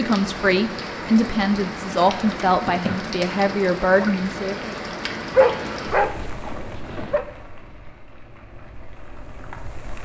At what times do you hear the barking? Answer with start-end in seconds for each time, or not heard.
5.3-7.2.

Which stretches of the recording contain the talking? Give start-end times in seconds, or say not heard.
0.0-4.8.